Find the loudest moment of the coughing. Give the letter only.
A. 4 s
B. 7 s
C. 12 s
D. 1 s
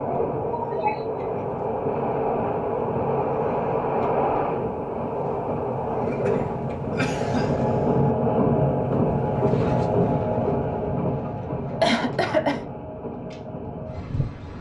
C.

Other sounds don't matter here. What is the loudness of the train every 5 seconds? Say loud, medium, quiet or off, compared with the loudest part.
loud, loud, medium.